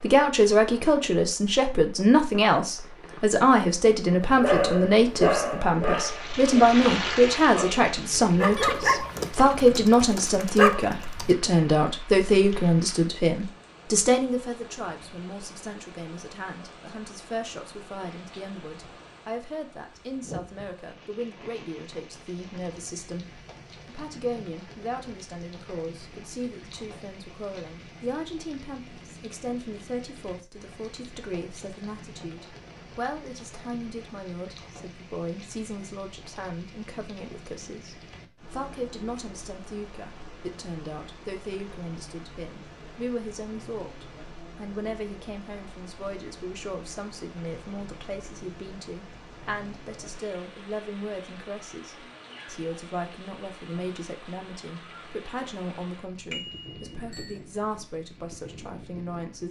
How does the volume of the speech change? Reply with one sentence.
The loudness of the speech goes down.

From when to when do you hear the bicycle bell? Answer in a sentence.
The bicycle bell can be heard from 56.3 to 57.4 s.